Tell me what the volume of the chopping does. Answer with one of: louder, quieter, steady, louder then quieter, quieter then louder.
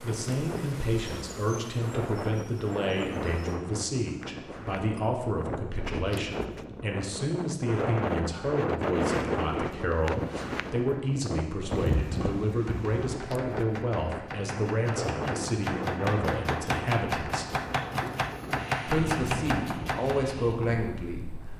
louder.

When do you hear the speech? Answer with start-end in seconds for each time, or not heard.
0.0-17.4, 18.9-21.4.